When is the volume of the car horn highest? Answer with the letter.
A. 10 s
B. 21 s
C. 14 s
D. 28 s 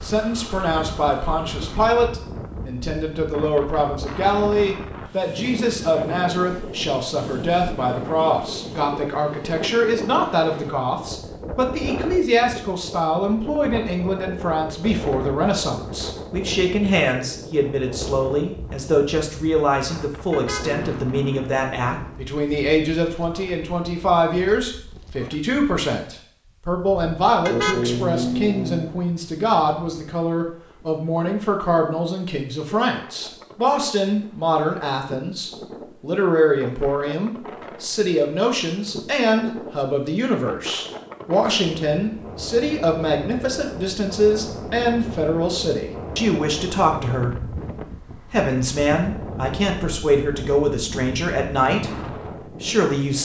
D.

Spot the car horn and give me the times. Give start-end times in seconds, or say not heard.
20.3-22.2, 27.4-28.9.